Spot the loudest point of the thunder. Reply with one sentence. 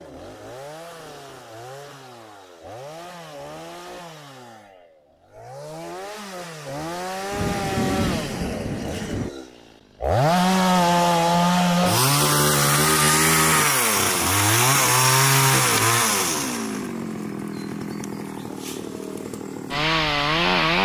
The loudest moment of the thunder is at 8 seconds.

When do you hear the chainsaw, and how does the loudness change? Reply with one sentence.
You can hear the chainsaw from 0.0 to 20.7 s, getting louder then quieter.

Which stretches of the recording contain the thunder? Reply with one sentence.
The thunder can be heard from 7.3 to 9.3 s.